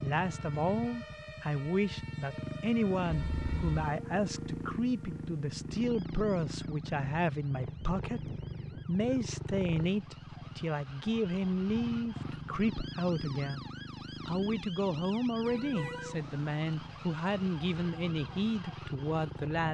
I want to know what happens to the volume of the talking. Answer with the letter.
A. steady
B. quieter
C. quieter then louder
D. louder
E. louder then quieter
A.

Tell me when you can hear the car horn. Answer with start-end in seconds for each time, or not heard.
3.1-3.8, 15.4-16.2.